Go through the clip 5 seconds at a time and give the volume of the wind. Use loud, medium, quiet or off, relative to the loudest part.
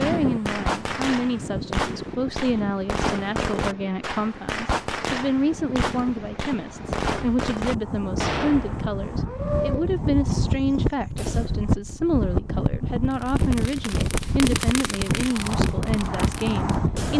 medium, medium, loud, loud.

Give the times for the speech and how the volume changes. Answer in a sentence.
The speech can be heard from 0.0 to 17.1 s, at a steady volume.